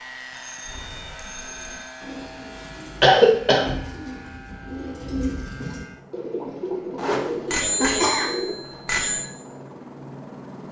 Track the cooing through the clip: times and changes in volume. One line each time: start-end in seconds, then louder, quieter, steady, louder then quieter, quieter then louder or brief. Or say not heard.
0.7-8.6 louder.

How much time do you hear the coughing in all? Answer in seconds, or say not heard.
2 s.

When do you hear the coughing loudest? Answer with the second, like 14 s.
3 s.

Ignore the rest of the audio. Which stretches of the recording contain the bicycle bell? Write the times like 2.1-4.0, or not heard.
0.3-1.9, 7.5-9.2.